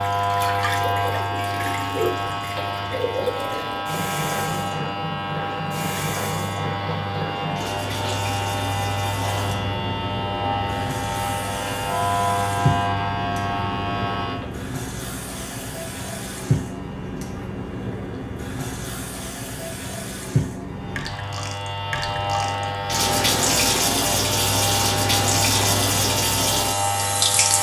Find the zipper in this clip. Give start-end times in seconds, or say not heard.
not heard.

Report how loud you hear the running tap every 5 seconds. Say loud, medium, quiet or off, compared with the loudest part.
medium, medium, medium, medium, loud, loud.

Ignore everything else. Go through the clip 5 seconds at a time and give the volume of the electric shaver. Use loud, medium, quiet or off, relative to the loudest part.
loud, loud, loud, quiet, loud, loud.